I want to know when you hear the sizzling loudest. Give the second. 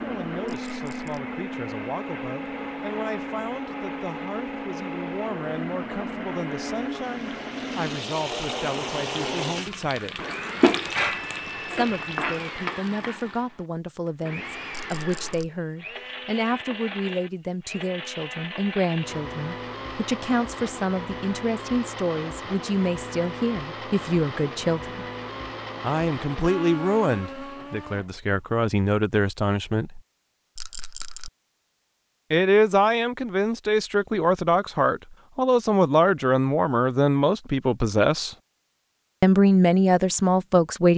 11 s.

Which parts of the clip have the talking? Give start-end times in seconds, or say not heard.
0.0-10.2, 11.7-25.0, 25.8-30.0, 32.3-38.4, 39.2-40.9.